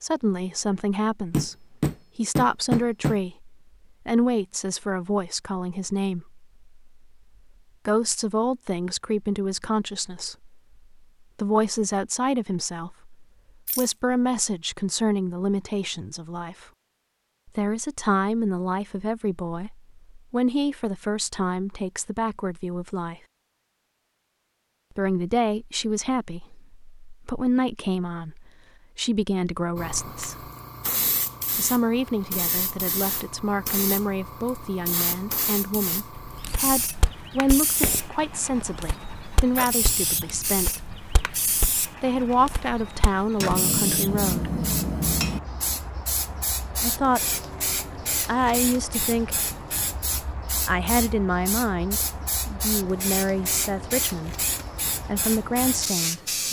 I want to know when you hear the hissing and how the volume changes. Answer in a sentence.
You can hear the hissing from 29.8 to 56.4 s, at a steady volume.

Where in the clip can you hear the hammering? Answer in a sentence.
The hammering can be heard from 1.3 to 3.2 s and from 43.4 to 45.4 s.